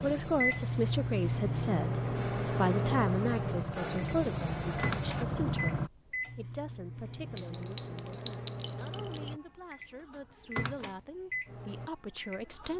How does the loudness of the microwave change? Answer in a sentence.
The loudness of the microwave goes down.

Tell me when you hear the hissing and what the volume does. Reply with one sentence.
The hissing can be heard from 0.0 to 5.9 s, getting louder.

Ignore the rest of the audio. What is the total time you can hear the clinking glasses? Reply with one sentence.
You can hear the clinking glasses for 2 seconds altogether.